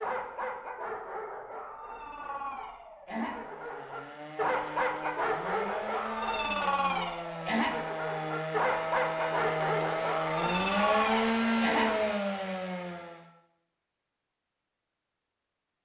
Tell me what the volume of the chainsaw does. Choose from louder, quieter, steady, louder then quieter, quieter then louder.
louder.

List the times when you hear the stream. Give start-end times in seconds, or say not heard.
not heard.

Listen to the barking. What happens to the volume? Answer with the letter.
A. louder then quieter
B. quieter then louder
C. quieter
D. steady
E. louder
E.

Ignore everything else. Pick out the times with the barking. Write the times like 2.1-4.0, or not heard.
0.0-12.0.